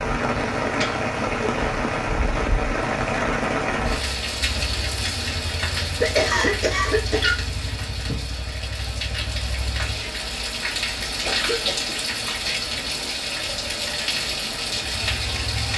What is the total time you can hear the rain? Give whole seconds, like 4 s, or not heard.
16 s.